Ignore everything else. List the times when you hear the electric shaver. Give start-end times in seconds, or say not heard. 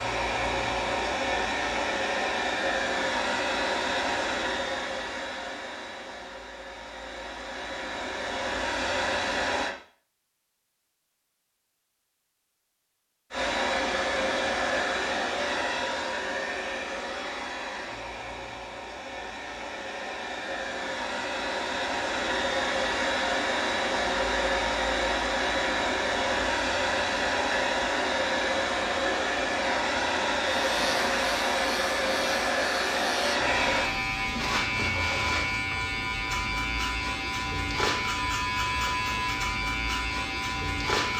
30.6-41.1.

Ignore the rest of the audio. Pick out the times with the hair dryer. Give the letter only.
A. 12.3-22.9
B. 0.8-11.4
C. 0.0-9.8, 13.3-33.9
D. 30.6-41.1
C.